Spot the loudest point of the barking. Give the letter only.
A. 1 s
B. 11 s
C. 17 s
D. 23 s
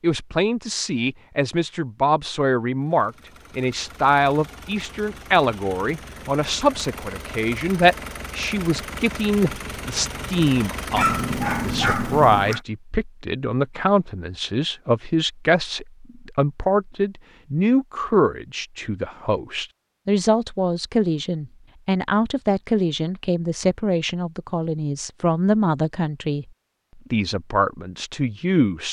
B.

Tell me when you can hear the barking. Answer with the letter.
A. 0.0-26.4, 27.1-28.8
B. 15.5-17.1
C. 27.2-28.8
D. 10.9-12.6
D.